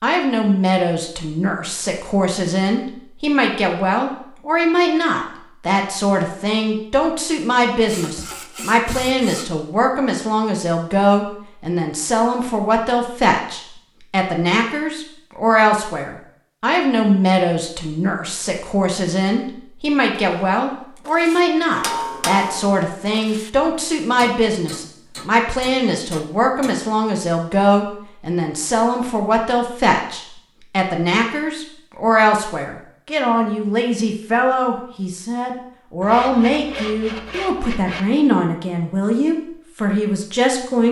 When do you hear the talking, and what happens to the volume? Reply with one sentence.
You can hear the talking from 0.0 to 40.8 s, at a steady volume.